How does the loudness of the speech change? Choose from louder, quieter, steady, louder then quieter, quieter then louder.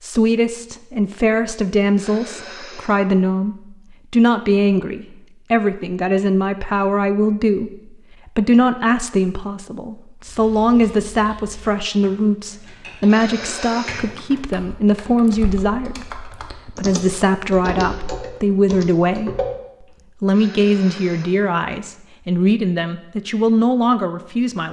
steady.